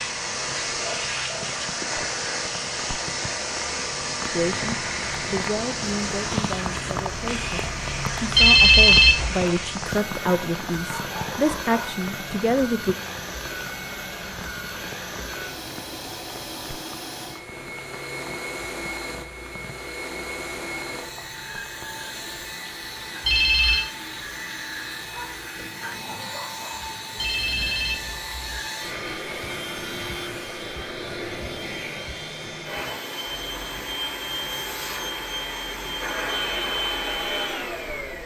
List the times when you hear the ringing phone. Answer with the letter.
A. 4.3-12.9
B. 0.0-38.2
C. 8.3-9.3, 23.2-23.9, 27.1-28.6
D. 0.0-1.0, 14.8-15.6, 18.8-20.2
C.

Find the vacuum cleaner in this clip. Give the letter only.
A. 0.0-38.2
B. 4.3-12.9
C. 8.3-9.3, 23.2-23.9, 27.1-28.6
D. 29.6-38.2
A.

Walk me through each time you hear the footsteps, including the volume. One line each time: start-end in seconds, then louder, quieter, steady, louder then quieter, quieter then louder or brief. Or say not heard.
not heard.